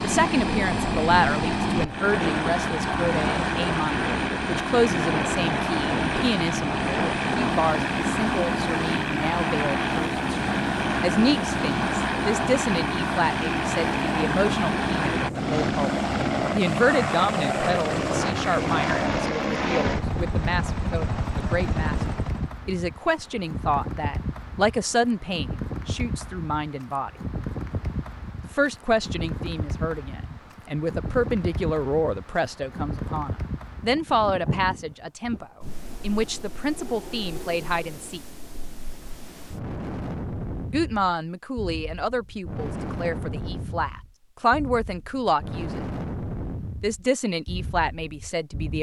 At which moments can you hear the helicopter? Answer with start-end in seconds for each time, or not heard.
0.0-22.6.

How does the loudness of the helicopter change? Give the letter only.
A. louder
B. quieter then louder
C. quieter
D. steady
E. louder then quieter
D.